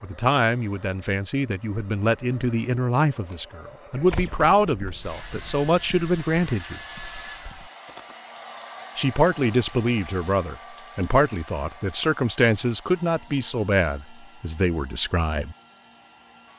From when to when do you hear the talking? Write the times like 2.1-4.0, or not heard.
0.0-6.8, 8.9-15.6.